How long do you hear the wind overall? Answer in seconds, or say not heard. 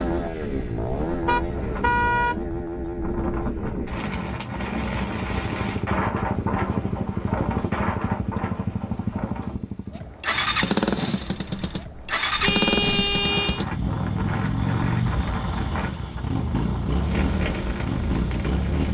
19 s.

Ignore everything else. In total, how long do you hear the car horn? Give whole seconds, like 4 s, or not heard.
2 s.